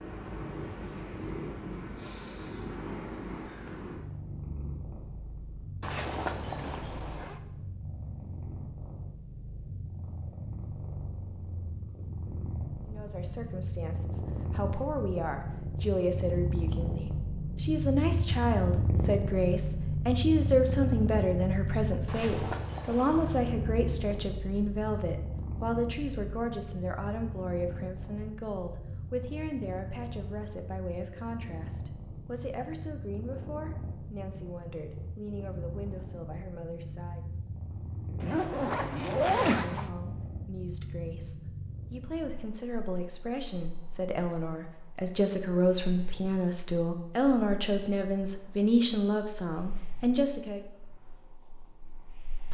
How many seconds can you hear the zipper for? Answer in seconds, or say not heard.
5 s.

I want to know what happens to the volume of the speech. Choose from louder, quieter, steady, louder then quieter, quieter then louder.
quieter then louder.